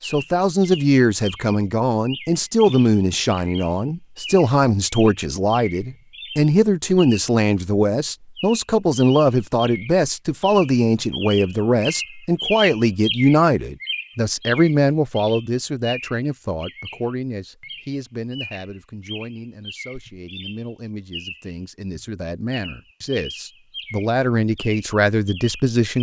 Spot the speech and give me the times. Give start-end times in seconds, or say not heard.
0.0-25.9.